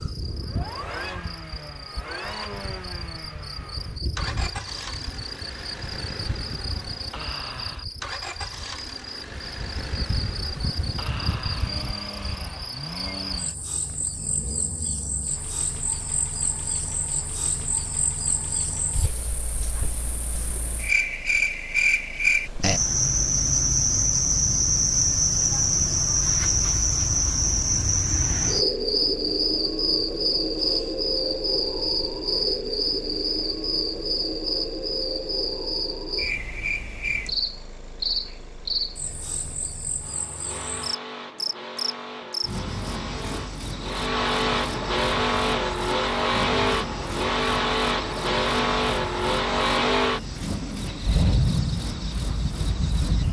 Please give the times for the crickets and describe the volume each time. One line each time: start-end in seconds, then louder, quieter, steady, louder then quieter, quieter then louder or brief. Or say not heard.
0.0-53.2 louder then quieter.